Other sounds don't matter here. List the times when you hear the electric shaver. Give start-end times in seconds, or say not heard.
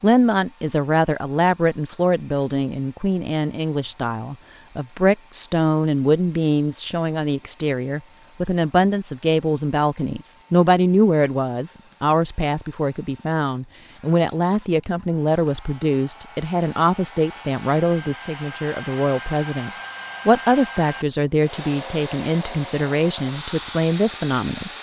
not heard.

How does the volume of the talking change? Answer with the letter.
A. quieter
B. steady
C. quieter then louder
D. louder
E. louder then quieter
B.